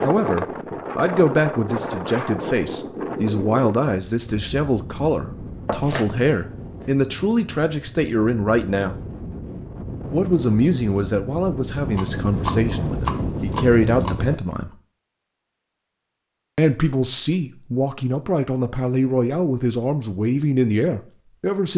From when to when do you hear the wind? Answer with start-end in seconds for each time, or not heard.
0.0-14.4.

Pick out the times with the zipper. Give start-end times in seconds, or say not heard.
not heard.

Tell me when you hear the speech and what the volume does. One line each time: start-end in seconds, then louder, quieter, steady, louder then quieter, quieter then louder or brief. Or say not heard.
0.0-9.0 steady
10.1-14.7 quieter then louder
16.6-21.7 steady.